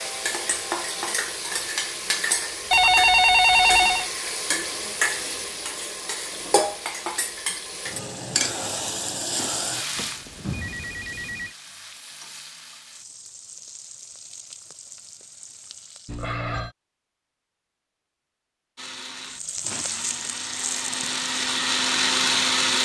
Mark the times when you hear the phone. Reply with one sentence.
The phone can be heard from 2.7 to 4.1 s, from 9.9 to 11.6 s and from 16.1 to 16.8 s.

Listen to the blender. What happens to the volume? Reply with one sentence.
The volume of the blender goes up.